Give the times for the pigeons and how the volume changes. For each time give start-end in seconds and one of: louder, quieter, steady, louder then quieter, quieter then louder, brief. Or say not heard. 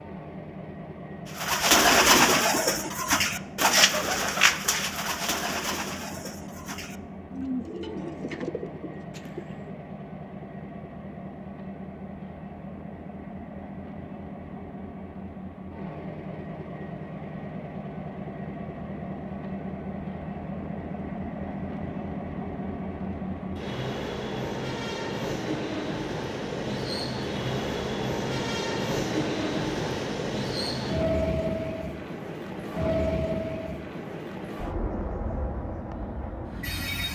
1.4-9.8 quieter.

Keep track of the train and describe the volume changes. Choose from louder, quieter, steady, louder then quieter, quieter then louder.
louder.